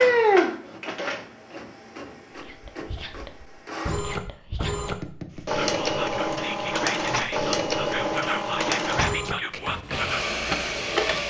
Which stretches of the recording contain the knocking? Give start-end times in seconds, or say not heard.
4.8-5.5.